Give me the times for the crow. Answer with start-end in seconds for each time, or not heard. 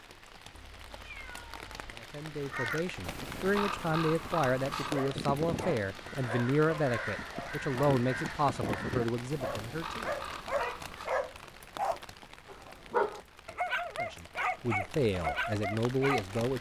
2.4-11.1.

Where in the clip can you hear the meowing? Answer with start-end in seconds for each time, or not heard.
0.5-1.9.